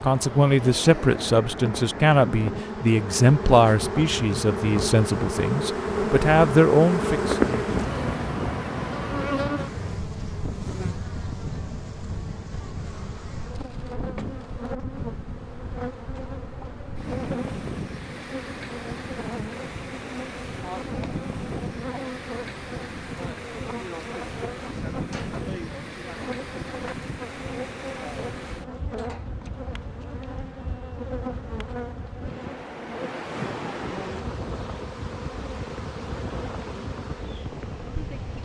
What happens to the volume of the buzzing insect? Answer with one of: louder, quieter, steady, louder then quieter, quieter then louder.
quieter.